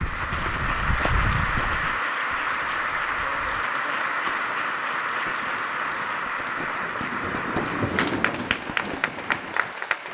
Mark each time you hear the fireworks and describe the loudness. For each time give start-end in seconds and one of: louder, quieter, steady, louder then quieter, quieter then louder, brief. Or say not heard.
4.0-10.1 louder then quieter.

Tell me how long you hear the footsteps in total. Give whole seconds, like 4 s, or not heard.
4 s.